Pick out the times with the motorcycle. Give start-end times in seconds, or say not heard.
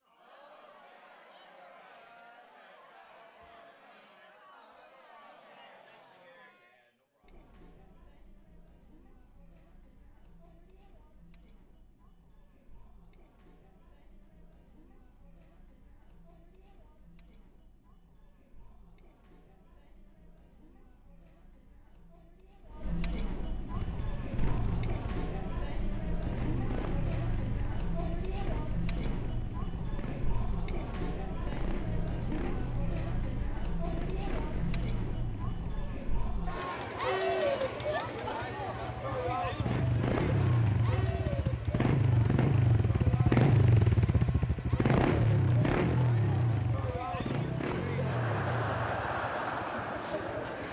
23.7-50.6.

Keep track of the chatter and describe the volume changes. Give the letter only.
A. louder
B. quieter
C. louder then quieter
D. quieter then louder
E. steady
D.